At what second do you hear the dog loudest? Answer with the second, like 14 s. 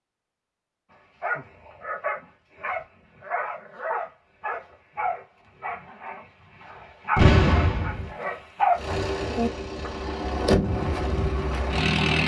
9 s.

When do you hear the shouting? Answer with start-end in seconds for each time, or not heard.
not heard.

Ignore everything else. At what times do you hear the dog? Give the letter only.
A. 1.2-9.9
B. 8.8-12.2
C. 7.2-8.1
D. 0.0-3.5
A.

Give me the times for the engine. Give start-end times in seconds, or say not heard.
8.8-12.2.